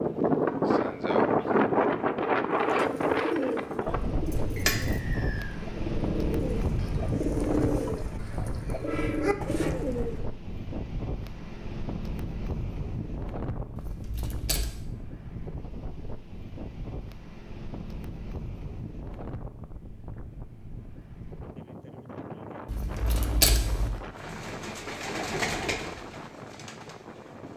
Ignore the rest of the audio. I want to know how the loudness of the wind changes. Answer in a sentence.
The loudness of the wind goes down.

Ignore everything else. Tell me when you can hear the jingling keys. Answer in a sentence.
The jingling keys can be heard from 4.2 to 5.2 s, from 13.8 to 14.8 s and from 22.6 to 24.0 s.